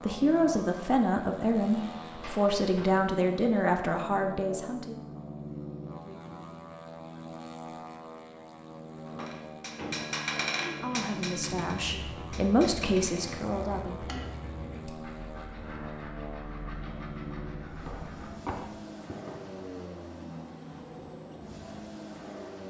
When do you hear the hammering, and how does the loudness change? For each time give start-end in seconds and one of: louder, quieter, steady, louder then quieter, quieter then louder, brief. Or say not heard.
9.2-15.1 quieter.